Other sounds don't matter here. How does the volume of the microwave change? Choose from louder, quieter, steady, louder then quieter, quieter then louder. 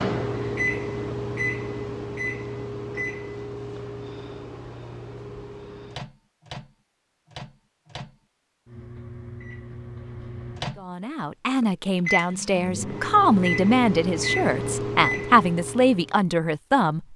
quieter then louder.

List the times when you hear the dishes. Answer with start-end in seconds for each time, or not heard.
not heard.